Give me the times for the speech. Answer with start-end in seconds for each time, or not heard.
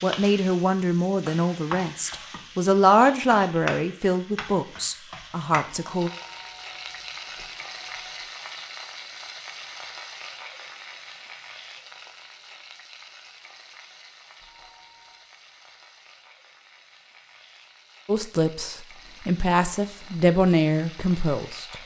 0.0-6.1, 18.1-21.8.